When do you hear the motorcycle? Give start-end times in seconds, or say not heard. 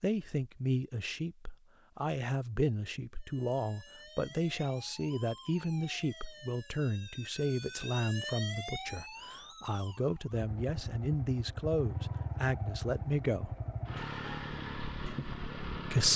10.3-16.1.